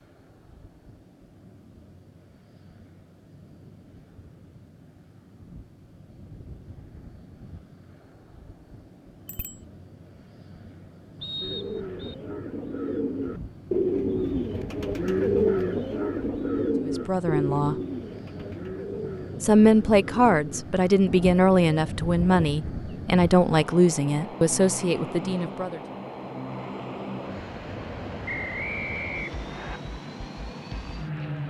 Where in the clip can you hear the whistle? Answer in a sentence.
You can hear the whistle from 11.2 to 12.2 s and from 28.2 to 29.8 s.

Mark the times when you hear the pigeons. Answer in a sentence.
You can hear the pigeons from 11.4 to 23.1 s.